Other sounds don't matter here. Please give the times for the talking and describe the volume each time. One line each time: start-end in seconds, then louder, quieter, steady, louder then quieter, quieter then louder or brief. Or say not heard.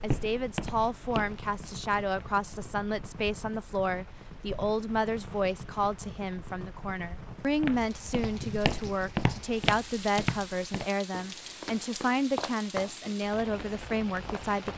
0.0-14.7 steady.